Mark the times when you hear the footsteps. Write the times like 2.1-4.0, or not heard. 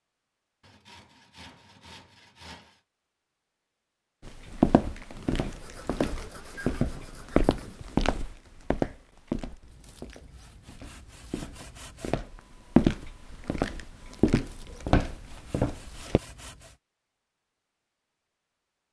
4.2-16.2.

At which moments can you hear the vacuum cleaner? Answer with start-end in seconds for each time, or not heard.
not heard.